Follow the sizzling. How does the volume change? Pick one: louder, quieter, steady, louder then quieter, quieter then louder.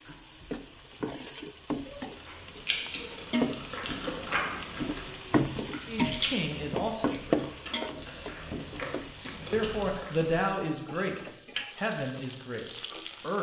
louder then quieter.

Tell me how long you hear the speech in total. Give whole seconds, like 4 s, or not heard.
5 s.